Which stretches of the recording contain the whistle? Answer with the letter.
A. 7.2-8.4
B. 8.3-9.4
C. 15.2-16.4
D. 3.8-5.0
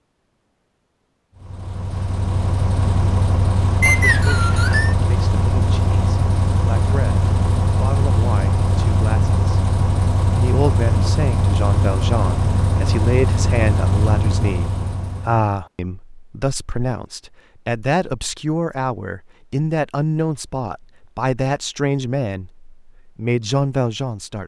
D.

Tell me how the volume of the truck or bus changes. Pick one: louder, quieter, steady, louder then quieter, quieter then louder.
steady.